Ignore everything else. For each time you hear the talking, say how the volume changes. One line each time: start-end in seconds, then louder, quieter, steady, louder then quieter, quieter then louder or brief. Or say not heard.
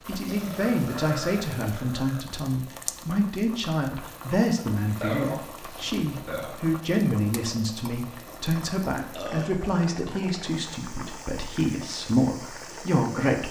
0.1-13.4 steady.